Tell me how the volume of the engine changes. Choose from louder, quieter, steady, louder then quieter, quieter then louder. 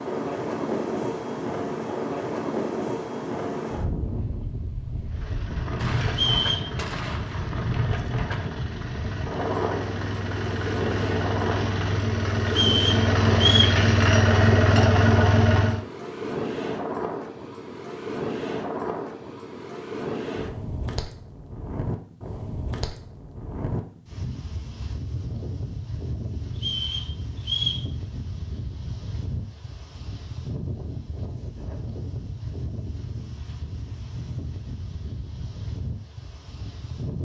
louder.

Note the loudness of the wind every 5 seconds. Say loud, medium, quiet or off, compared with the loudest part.
loud, loud, loud, loud, medium, medium, medium, medium.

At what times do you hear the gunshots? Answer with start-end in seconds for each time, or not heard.
5.8-7.5.